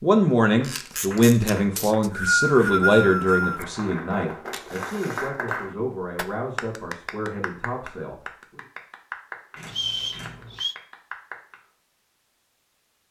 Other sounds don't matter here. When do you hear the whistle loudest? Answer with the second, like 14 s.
2 s.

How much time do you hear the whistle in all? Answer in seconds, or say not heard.
3 s.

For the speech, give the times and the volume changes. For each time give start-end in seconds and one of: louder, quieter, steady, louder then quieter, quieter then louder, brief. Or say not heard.
0.0-8.6 quieter.